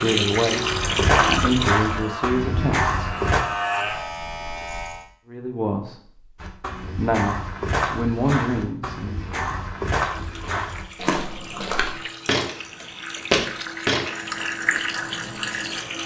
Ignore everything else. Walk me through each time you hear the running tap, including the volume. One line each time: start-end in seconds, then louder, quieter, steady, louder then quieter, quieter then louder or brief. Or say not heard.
0.0-1.9 brief
10.0-16.0 louder.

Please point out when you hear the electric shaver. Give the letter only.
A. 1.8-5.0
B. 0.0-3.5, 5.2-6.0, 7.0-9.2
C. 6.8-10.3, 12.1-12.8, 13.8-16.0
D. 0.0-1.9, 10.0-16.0
A.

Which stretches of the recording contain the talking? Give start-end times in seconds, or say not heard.
0.0-3.5, 5.2-6.0, 7.0-9.2.